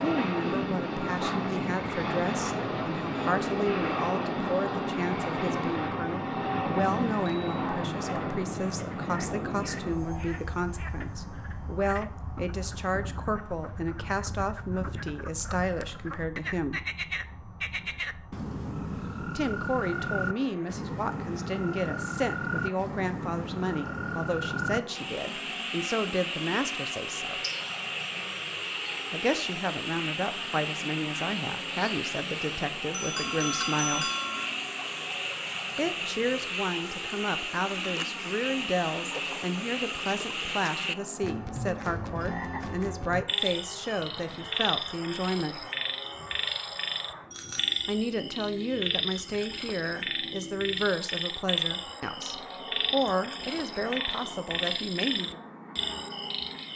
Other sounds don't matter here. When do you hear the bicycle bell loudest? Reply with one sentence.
The loudest moment of the bicycle bell is at 34 seconds.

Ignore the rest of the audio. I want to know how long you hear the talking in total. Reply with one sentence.
The talking can be heard for 47 seconds in total.